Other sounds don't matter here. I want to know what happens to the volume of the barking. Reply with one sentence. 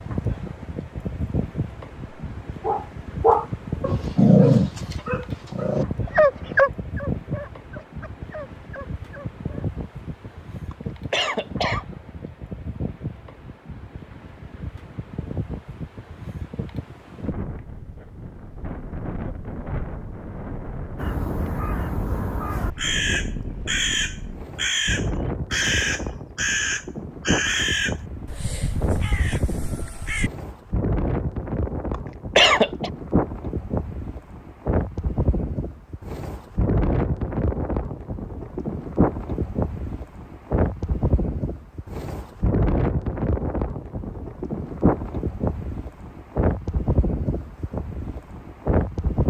The volume of the barking goes down.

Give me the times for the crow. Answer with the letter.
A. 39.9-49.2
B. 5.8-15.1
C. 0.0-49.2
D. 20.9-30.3
D.